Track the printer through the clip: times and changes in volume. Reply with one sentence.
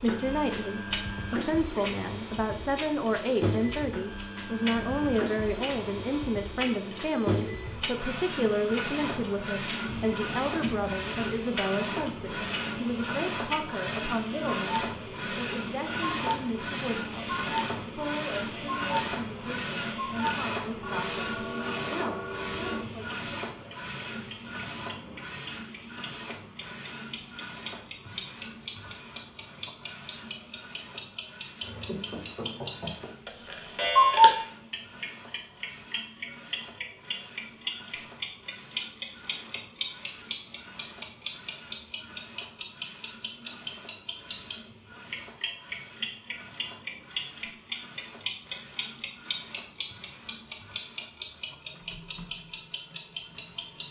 You can hear the printer from 0.0 to 53.8 s, getting quieter.